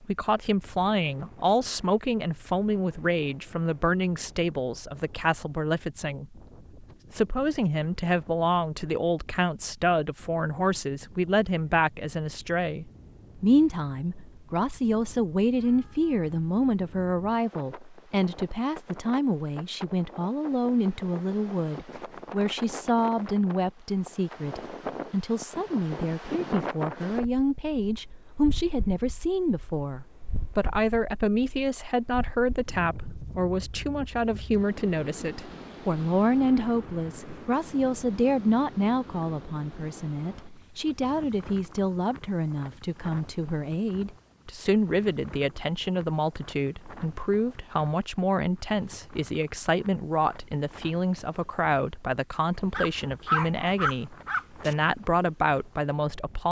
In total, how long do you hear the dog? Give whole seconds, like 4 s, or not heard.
2 s.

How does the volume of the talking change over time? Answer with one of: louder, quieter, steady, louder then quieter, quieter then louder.
steady.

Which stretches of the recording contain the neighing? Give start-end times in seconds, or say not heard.
not heard.